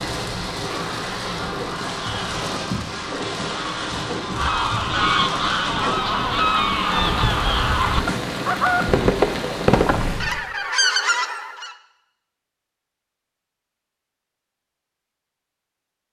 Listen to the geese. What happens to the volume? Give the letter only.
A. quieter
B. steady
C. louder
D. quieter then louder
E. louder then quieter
C.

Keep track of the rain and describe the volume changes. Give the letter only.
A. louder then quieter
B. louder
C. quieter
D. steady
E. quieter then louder
D.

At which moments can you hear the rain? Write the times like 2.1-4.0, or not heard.
0.0-10.3.